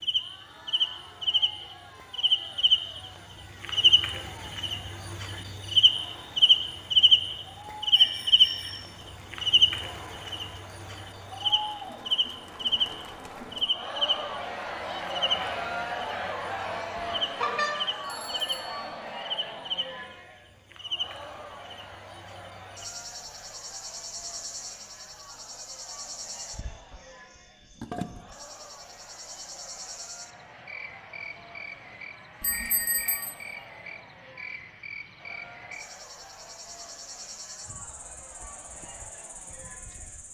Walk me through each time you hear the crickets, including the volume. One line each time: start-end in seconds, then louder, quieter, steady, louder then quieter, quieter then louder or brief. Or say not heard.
0.0-40.3 quieter.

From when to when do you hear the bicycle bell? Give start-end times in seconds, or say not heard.
7.9-8.9, 17.4-18.9, 32.4-33.4.